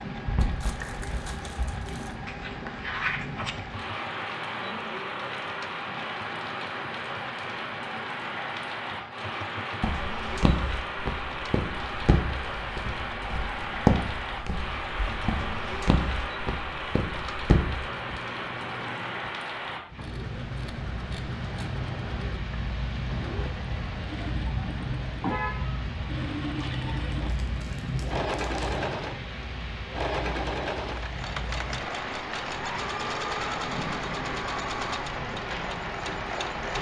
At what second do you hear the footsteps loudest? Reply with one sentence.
The loudest moment of the footsteps is at 14 seconds.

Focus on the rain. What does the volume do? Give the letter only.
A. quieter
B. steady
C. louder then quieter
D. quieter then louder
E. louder
B.